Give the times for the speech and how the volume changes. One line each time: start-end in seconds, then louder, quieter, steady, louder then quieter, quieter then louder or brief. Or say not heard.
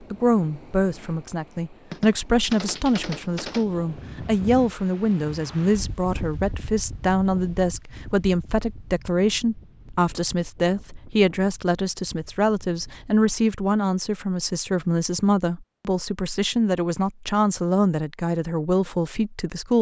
0.1-19.7 steady.